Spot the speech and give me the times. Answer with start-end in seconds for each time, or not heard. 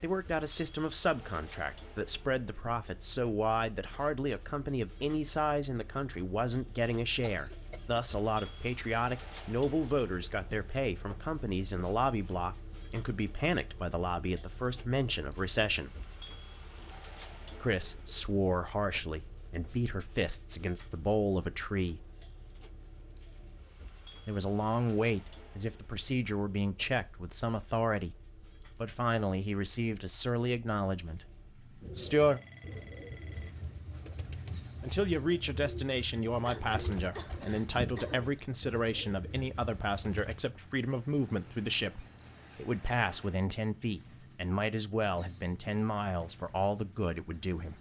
0.0-15.9, 17.6-22.1, 24.2-32.4, 34.8-47.7.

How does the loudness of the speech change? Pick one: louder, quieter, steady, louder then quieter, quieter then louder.
steady.